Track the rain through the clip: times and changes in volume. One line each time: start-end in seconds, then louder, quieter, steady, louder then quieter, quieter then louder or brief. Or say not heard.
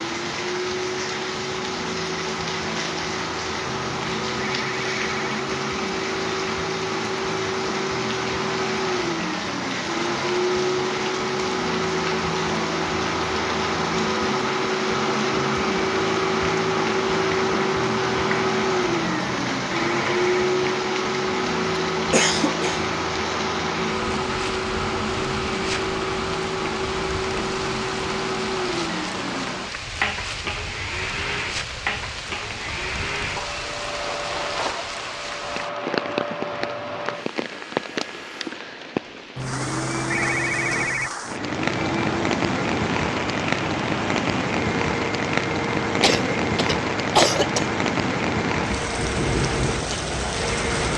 0.0-50.9 louder.